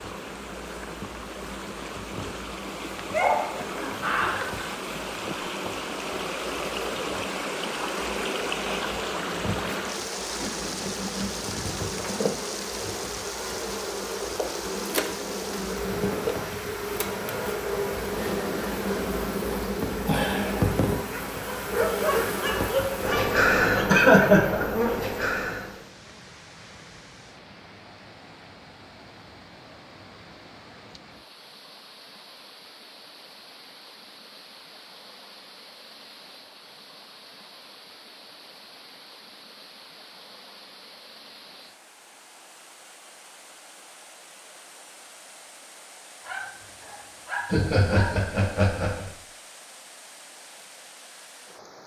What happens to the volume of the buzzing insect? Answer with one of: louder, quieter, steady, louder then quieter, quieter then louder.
louder.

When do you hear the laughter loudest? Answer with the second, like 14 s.
24 s.